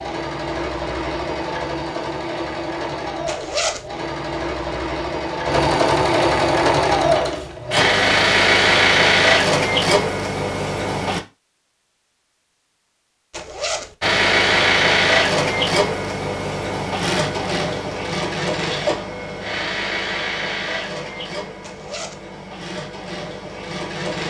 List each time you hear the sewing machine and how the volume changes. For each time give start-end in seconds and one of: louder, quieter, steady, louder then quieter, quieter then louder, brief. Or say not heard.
0.0-11.2 louder
14.0-24.2 quieter.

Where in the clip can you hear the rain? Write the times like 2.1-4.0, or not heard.
not heard.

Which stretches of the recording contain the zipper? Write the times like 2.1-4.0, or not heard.
3.2-3.9, 13.3-13.9, 21.6-22.2.